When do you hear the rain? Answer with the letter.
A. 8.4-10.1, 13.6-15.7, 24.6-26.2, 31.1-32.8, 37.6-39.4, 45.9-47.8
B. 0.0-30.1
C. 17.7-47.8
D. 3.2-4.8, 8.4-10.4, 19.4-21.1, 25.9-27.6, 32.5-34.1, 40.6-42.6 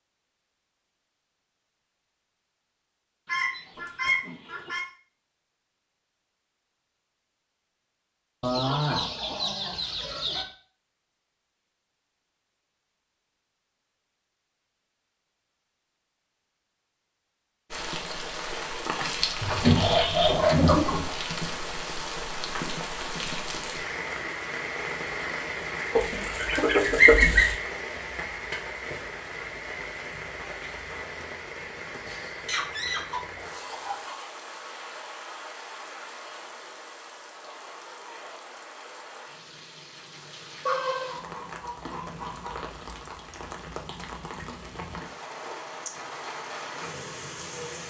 C.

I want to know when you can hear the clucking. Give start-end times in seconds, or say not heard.
3.2-4.8, 8.4-10.4, 19.4-21.1, 25.9-27.6, 32.5-34.1, 40.6-42.6.